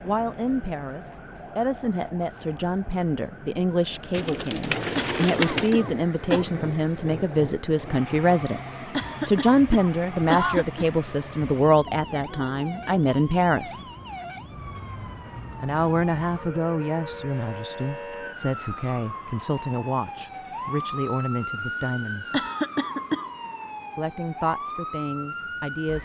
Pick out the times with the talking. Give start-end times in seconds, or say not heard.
0.0-13.8, 15.6-22.4, 23.9-26.0.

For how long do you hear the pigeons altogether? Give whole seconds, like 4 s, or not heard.
2 s.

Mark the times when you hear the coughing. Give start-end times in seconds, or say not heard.
5.0-6.5, 8.9-10.9, 22.3-23.3.